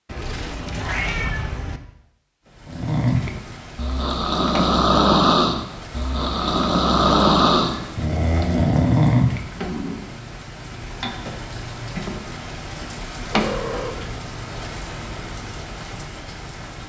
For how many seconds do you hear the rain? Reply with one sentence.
The rain can be heard for 14 seconds in total.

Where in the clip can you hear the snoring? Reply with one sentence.
You can hear the snoring from 2.6 to 10.0 s.